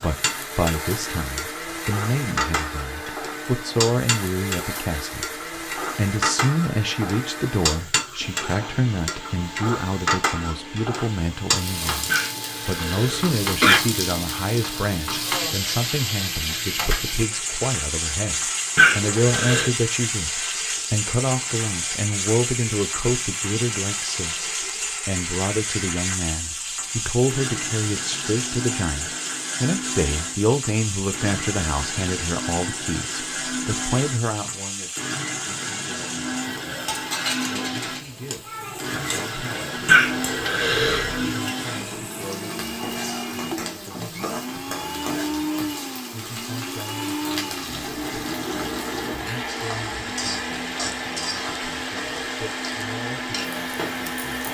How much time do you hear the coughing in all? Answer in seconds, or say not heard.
4 s.